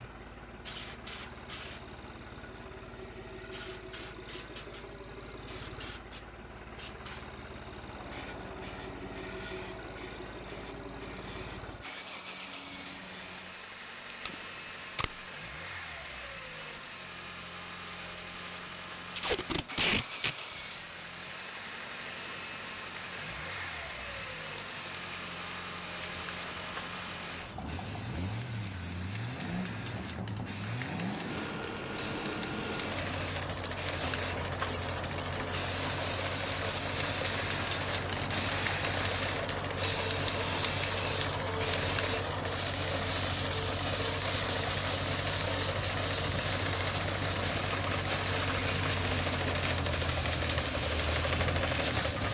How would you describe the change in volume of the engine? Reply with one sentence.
The loudness of the engine goes up.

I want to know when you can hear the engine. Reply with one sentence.
You can hear the engine from 0.0 to 52.3 s.